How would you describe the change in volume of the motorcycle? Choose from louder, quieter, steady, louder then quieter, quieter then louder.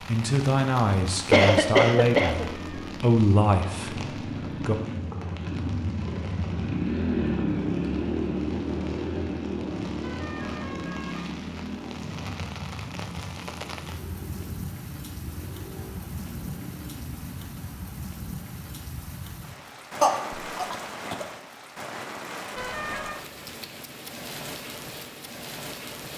louder then quieter.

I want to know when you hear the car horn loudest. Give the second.
23 s.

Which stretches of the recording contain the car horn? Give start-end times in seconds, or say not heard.
2.5-3.0, 10.0-11.3, 22.6-23.2.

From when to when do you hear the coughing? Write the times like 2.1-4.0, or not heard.
1.3-2.5, 20.0-21.2.